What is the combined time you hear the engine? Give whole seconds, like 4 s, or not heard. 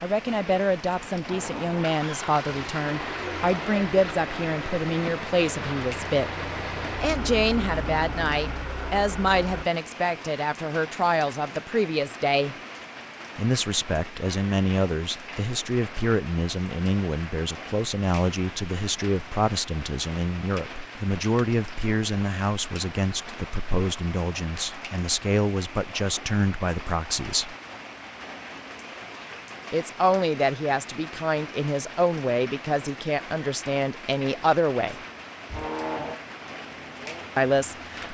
12 s.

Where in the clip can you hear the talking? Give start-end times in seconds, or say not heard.
0.0-6.3, 7.0-12.6, 13.3-27.6, 29.7-35.0, 37.4-37.9.